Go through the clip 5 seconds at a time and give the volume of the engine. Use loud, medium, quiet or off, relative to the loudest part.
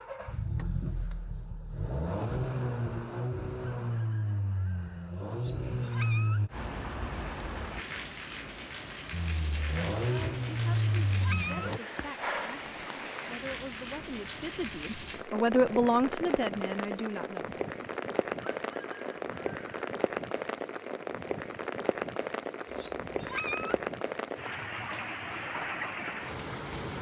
loud, loud, loud, off, off, off.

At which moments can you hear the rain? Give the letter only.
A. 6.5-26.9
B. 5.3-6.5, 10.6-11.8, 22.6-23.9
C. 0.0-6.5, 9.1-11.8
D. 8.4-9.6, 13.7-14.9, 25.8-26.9
A.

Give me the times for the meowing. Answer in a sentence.
You can hear the meowing from 5.3 to 6.5 s, from 10.6 to 11.8 s and from 22.6 to 23.9 s.